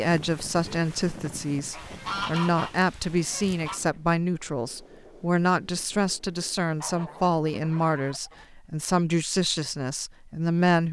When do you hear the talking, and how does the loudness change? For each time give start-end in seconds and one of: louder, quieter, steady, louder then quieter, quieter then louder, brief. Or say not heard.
0.0-10.8 steady.